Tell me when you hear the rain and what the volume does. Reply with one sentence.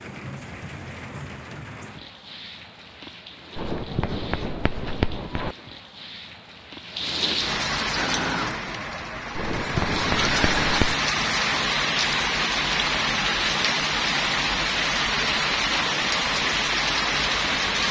You can hear the rain from 0.0 to 17.8 s, getting louder.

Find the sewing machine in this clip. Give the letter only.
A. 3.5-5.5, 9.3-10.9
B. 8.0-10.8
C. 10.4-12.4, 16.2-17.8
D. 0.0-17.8
B.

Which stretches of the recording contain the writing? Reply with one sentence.
You can hear the writing from 3.5 to 5.5 s and from 9.3 to 10.9 s.